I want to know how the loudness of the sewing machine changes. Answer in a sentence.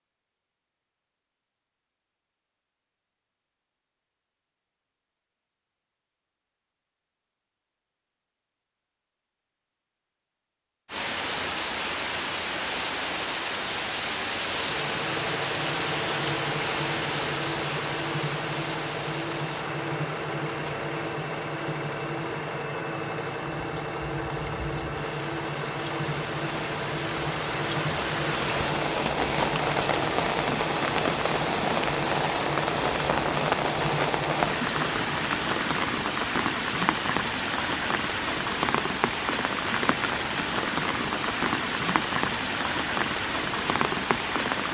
The loudness of the sewing machine stays about the same.